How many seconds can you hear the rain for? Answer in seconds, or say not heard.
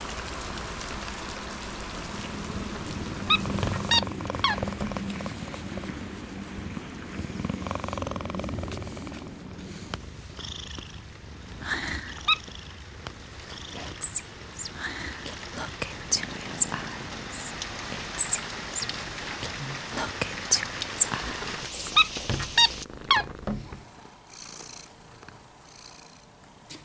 23 s.